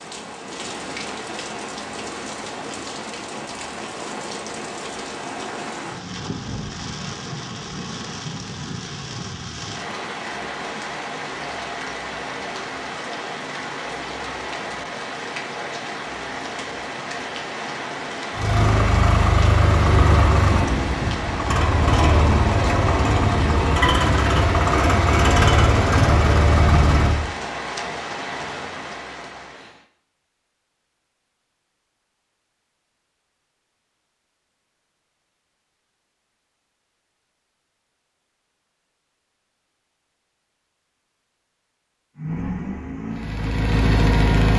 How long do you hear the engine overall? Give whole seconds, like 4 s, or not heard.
11 s.